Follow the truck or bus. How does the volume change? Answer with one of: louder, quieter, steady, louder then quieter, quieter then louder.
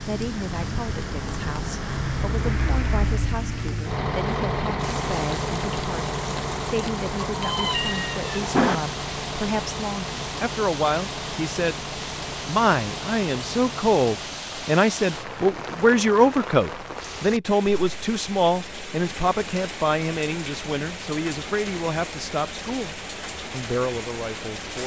quieter.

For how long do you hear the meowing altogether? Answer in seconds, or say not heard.
2 s.